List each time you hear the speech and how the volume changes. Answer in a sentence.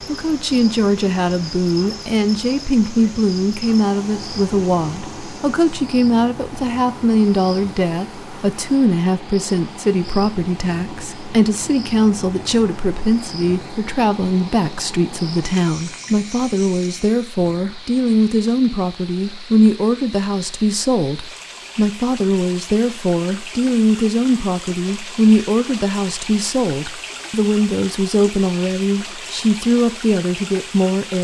You can hear the speech from 0.1 to 31.1 s, at a steady volume.